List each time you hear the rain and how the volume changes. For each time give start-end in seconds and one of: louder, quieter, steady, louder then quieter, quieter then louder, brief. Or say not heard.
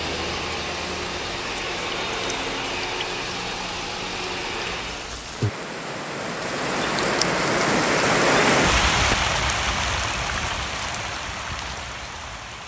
0.0-12.6 louder then quieter.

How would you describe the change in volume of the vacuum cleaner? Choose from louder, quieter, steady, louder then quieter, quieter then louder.
steady.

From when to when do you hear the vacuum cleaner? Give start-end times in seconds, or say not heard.
0.0-5.2.